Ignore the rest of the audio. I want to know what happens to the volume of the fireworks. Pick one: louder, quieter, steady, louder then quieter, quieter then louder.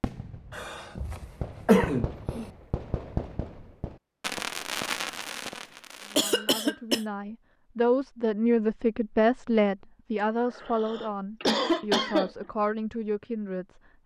louder.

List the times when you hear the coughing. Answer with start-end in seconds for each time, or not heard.
0.6-2.5, 6.2-7.0, 10.5-12.3.